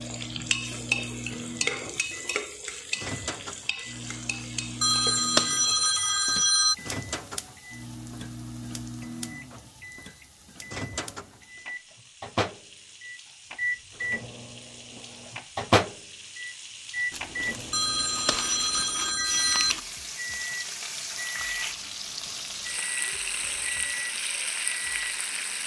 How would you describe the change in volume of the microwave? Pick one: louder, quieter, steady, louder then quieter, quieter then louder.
louder then quieter.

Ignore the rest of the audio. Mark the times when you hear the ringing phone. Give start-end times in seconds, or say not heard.
4.8-6.8, 17.7-19.8.